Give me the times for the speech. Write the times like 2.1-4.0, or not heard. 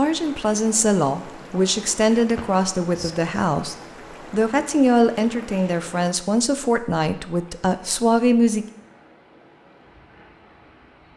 0.0-8.7.